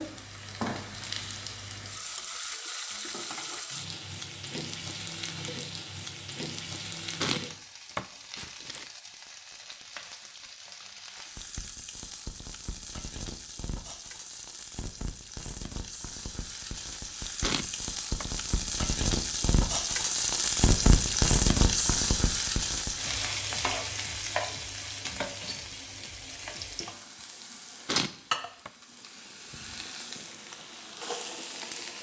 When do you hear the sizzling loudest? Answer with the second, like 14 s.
21 s.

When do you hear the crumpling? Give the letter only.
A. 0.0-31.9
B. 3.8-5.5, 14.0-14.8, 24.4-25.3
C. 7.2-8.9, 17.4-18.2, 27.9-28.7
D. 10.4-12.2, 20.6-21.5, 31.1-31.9
C.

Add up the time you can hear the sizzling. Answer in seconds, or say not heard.
32 s.